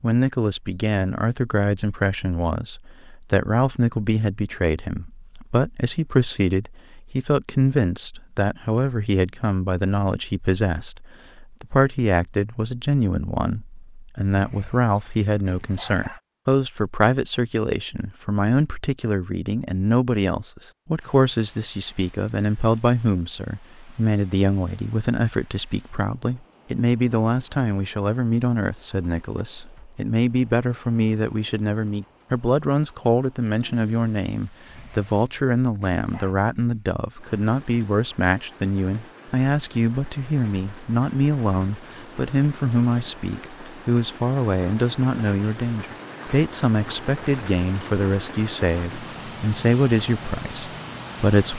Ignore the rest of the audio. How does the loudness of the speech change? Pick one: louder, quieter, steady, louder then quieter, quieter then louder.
steady.